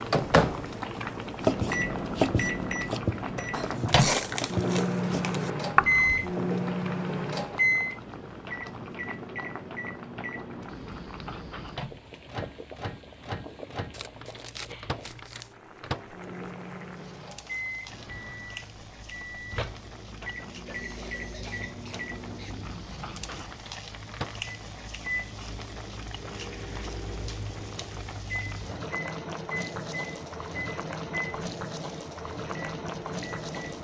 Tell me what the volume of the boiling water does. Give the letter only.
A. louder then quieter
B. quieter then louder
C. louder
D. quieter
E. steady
B.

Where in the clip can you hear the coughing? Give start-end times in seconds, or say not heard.
20.6-22.6.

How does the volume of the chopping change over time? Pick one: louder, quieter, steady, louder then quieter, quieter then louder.
quieter then louder.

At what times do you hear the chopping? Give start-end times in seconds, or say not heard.
1.4-6.3.